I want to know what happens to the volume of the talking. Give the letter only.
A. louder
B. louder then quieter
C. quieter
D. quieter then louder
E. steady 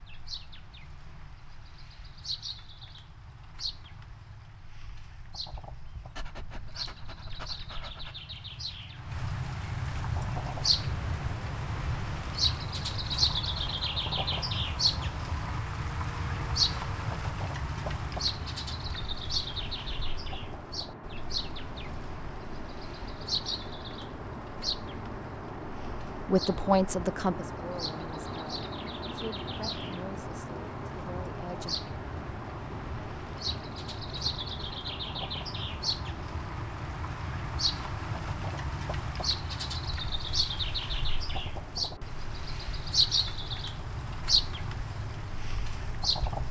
C.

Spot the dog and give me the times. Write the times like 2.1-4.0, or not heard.
6.2-8.2.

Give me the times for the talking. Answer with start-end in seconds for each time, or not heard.
26.1-31.8.